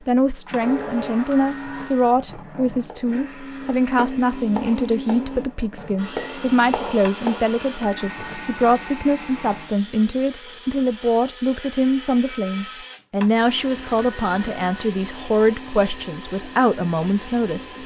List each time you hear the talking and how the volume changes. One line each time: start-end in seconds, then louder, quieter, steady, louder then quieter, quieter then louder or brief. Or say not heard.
0.1-17.8 steady.